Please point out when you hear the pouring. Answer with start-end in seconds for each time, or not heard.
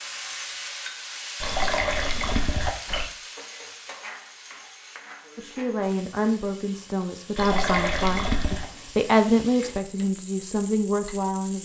1.4-3.1, 7.3-8.7.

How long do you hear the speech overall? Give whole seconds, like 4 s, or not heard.
6 s.